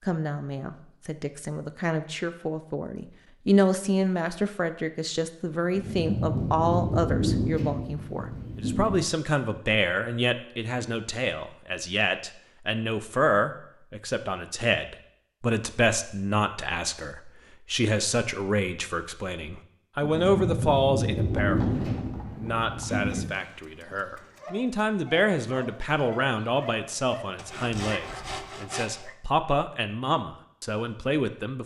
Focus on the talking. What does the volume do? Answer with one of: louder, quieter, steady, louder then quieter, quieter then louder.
steady.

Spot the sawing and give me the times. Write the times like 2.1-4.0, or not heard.
27.4-29.1.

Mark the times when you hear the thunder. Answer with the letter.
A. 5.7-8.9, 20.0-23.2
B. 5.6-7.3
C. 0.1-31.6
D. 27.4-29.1
A.